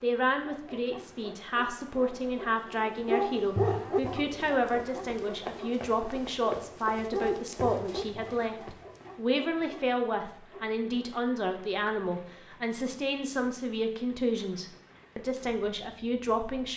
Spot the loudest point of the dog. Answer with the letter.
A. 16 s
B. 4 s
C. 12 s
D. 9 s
B.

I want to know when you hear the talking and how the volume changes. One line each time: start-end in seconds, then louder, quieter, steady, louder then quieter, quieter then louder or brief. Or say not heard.
0.0-16.7 steady.